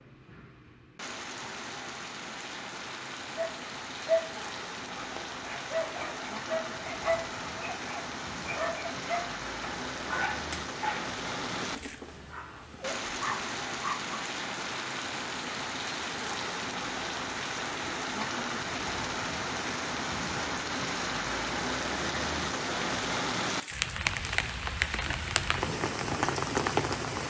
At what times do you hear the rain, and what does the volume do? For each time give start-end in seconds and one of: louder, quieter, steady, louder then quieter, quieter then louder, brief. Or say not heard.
0.0-27.2 louder.